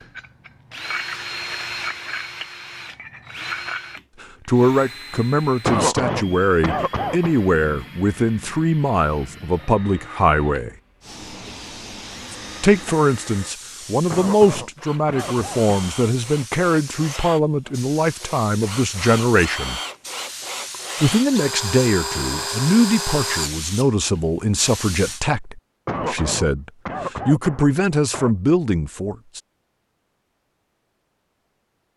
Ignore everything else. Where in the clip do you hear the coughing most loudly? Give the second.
6 s.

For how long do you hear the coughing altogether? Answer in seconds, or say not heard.
6 s.